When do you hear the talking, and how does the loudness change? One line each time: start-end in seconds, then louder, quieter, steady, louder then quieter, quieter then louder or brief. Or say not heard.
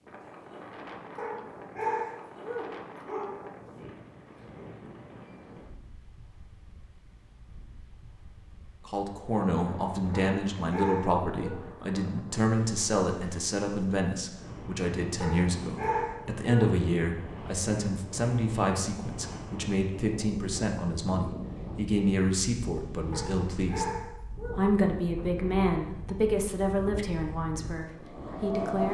8.8-28.8 steady.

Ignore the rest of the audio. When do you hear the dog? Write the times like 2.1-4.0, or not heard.
1.1-3.5, 10.1-11.6, 15.2-16.8, 23.1-24.6.